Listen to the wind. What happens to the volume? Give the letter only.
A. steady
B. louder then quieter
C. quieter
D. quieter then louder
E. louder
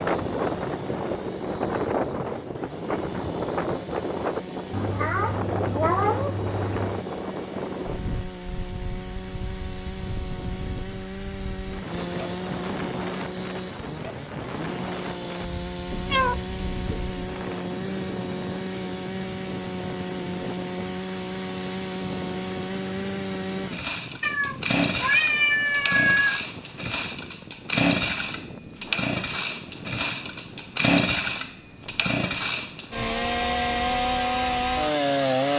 C.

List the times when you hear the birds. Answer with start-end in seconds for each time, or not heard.
not heard.